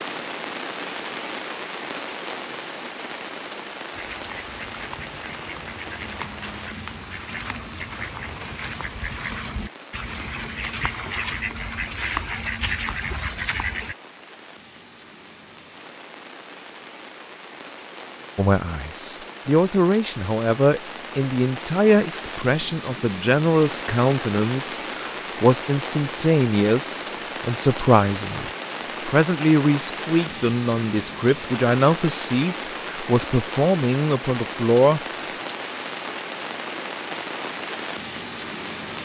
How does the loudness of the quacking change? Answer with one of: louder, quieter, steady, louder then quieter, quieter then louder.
louder.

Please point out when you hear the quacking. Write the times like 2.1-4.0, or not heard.
3.9-13.9.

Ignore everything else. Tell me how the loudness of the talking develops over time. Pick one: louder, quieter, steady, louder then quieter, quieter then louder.
steady.